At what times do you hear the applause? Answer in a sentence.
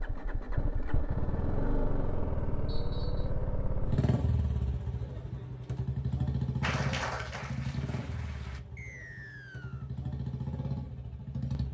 You can hear the applause from 6.6 to 8.6 s.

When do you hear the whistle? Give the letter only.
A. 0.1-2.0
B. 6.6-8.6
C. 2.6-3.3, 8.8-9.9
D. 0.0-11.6
C.